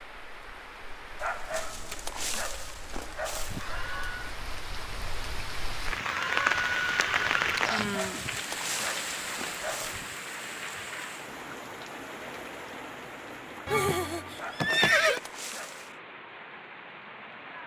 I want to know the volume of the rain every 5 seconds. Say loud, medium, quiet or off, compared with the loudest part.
quiet, loud, medium, quiet.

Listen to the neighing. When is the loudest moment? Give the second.
15 s.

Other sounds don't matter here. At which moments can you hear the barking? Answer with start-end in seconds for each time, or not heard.
1.1-3.8, 7.6-10.1, 14.3-15.9.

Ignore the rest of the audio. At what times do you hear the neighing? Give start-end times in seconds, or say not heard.
3.5-4.3, 6.0-7.7, 13.7-15.2.